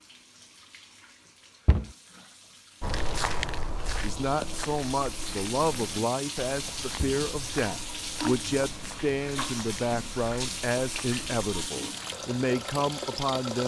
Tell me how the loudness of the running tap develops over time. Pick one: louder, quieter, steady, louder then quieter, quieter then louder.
louder.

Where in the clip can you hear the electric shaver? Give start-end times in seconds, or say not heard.
not heard.